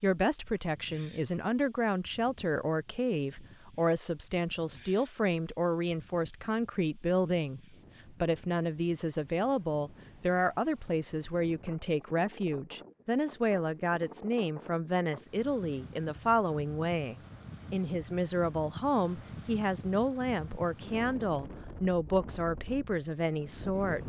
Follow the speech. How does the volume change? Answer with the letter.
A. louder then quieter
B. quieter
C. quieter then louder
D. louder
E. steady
E.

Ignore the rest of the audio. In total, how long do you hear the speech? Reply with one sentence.
The speech can be heard for 24 seconds in total.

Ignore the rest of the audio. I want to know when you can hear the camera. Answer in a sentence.
The camera can't be heard in this clip.